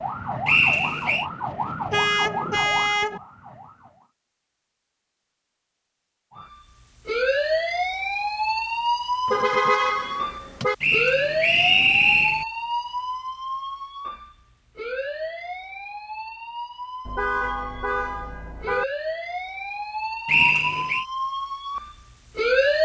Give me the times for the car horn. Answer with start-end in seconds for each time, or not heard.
1.9-3.2, 9.3-10.8, 17.1-18.9.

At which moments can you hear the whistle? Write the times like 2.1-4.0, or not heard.
0.5-1.2, 10.8-12.4, 20.2-21.1.